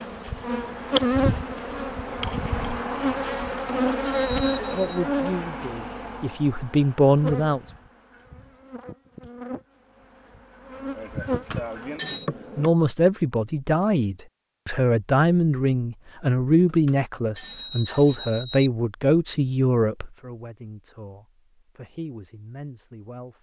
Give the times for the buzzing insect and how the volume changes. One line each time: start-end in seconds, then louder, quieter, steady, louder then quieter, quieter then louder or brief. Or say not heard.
0.0-12.7 quieter then louder.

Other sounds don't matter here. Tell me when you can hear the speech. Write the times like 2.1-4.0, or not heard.
4.5-7.6, 12.6-23.3.